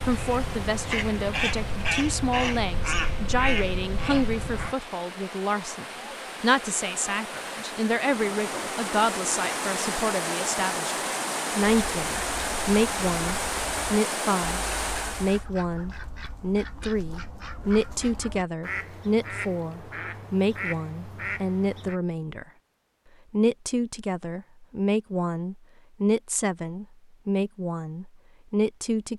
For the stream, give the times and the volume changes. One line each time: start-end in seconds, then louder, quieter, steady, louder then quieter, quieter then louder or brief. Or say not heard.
0.0-15.4 louder.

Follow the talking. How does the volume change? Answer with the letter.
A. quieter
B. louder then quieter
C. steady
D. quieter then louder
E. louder
C.